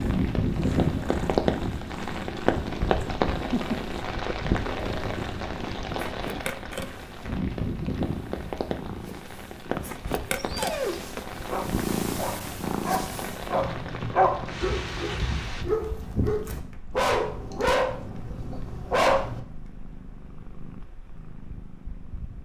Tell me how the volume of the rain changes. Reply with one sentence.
The volume of the rain goes down.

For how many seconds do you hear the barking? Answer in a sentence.
The barking can be heard for 9 seconds in total.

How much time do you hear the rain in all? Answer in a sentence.
The rain can be heard for 16 seconds in total.